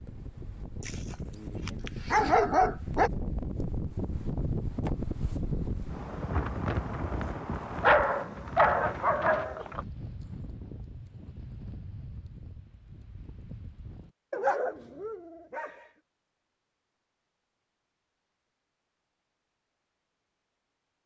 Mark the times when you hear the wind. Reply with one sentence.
You can hear the wind from 0.0 to 14.2 s.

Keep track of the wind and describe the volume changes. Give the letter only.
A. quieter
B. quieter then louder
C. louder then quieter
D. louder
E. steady
C.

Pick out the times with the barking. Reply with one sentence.
You can hear the barking from 0.8 to 3.1 s, from 7.8 to 9.8 s and from 14.3 to 15.8 s.